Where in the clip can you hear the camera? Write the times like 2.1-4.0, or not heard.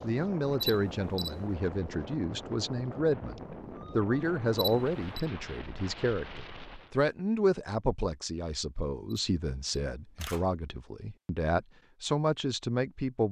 0.6-1.6, 4.5-5.0, 9.1-10.4.